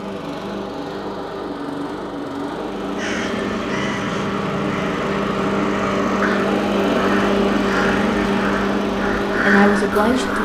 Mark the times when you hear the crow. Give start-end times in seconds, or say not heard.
3.0-10.4.